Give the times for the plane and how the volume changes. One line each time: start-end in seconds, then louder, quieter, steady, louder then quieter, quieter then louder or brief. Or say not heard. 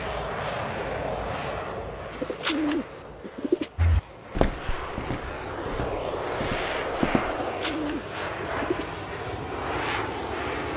0.0-10.7 quieter then louder.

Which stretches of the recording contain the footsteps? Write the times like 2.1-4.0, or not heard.
3.8-7.3.